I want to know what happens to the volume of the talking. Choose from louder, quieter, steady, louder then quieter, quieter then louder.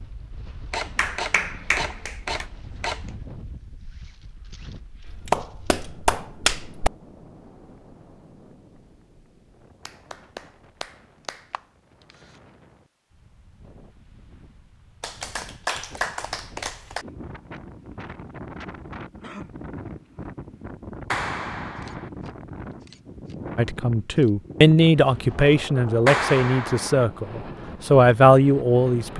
quieter then louder.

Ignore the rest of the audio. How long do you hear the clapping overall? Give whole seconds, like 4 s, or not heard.
9 s.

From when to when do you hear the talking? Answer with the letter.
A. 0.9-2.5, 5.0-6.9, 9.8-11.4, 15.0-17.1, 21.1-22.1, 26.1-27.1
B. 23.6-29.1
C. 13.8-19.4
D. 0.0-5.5
B.